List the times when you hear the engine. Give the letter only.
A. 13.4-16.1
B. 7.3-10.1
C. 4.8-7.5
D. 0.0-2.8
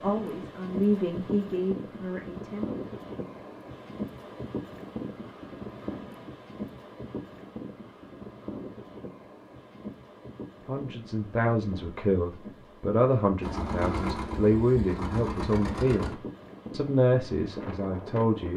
A.